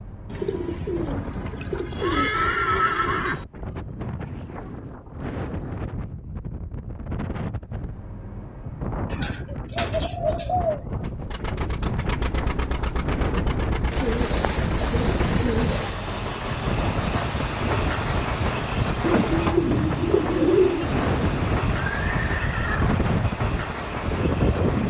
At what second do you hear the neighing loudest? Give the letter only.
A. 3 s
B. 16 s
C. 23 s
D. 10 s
A.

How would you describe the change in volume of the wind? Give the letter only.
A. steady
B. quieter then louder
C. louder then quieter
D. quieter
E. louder
E.